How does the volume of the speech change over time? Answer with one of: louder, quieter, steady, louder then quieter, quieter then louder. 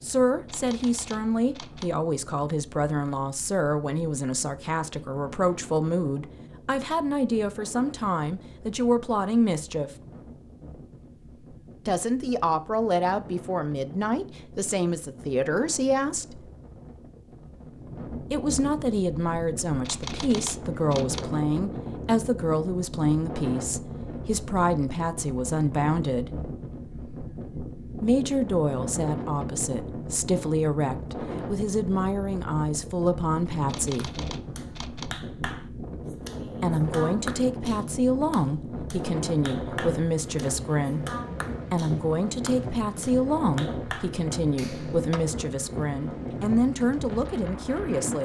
steady.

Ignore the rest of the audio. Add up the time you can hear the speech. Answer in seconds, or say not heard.
40 s.